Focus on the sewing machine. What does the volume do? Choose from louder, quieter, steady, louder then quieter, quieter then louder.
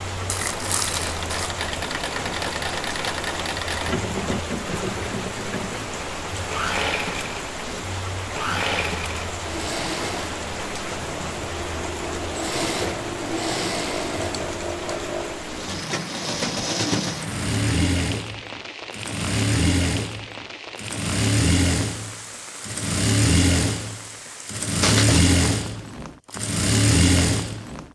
louder.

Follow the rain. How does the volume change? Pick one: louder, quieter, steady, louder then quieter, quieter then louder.
quieter.